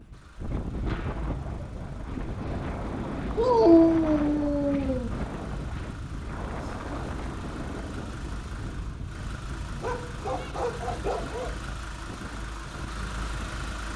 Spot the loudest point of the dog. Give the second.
4 s.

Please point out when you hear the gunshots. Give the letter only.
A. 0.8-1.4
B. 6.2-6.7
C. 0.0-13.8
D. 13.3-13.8
A.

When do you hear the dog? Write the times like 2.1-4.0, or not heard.
3.4-5.1, 8.7-11.6.